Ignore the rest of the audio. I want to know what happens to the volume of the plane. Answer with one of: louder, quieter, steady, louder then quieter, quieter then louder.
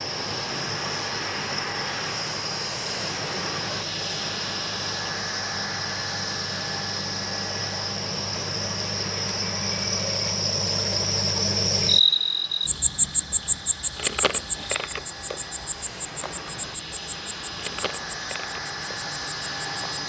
quieter then louder.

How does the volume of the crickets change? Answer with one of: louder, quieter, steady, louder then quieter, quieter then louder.
louder then quieter.